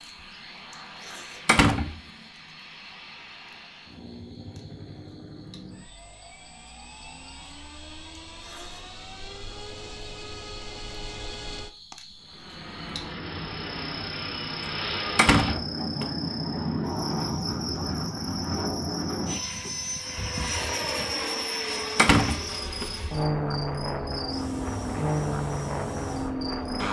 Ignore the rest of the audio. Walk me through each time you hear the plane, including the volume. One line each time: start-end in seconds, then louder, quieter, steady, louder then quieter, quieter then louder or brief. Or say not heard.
0.0-26.8 louder.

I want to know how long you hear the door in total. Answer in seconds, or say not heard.
2 s.